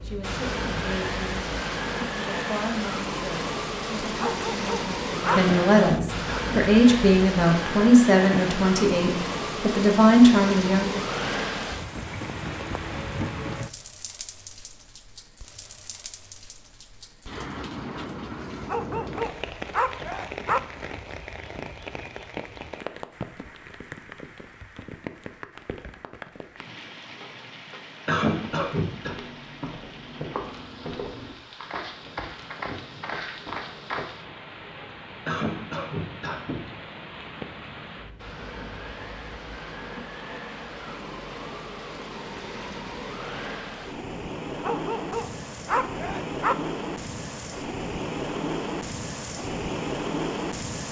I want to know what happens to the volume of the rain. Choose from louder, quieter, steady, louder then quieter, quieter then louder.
quieter then louder.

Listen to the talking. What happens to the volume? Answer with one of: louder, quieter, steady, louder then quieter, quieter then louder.
louder.